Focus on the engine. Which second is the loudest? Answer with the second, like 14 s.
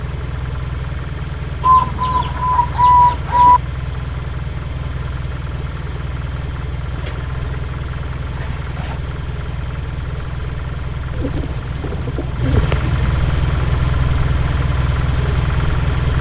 14 s.